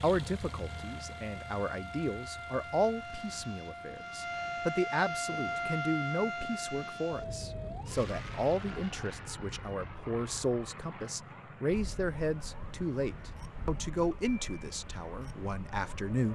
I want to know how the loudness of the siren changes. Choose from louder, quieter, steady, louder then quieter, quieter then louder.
louder then quieter.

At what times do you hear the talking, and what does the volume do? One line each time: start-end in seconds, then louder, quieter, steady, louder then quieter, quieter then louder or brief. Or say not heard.
0.0-16.3 steady.